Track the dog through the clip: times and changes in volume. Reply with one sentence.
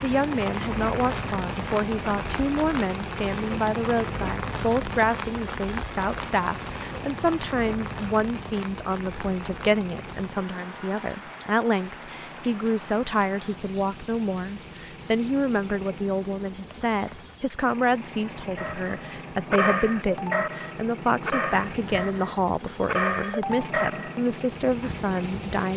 The dog can be heard from 18.6 to 24.1 s, getting quieter then louder.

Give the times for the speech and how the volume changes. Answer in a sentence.
The speech can be heard from 0.0 to 25.7 s, at a steady volume.